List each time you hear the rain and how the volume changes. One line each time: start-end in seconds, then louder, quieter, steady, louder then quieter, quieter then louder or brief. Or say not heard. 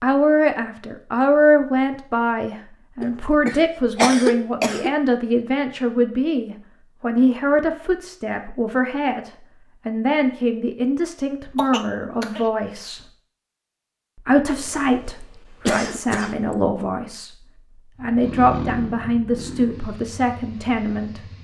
not heard.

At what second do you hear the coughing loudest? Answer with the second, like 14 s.
4 s.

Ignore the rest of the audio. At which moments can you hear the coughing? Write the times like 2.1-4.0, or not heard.
3.0-4.9, 11.6-12.4, 14.6-16.6.